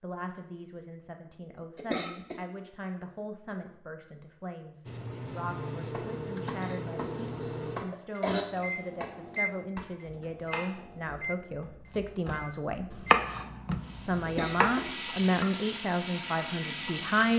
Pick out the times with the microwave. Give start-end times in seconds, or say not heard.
4.8-17.3.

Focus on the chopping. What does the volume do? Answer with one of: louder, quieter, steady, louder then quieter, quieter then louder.
quieter then louder.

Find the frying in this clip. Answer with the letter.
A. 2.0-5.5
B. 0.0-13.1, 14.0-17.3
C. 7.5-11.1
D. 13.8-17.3
D.